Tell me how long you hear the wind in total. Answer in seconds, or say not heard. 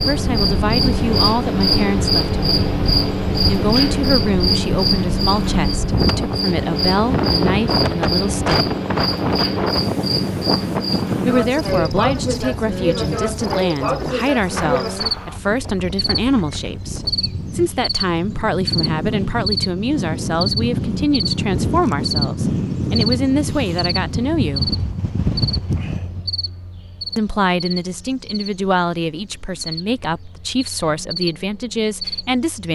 26 s.